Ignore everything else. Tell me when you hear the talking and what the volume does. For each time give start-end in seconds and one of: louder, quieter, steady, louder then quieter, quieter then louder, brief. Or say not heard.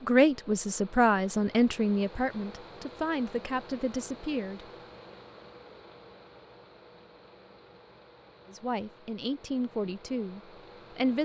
0.0-4.7 quieter
8.4-11.2 brief.